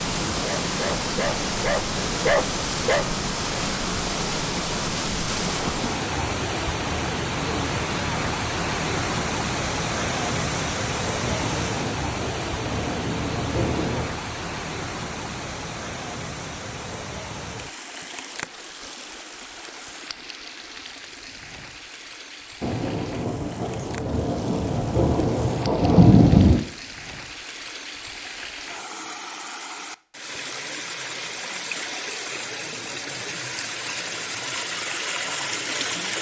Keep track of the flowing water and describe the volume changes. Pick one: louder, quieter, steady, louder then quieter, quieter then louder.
quieter then louder.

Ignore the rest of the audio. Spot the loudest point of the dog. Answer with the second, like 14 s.
2 s.